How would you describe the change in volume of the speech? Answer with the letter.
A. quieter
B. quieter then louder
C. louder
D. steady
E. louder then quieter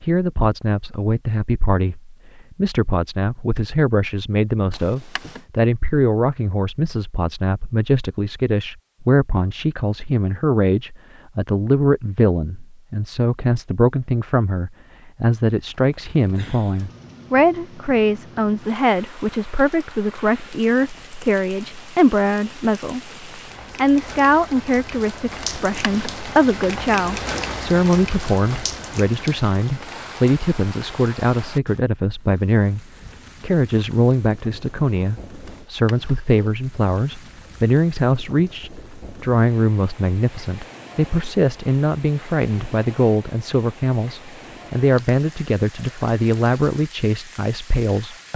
D.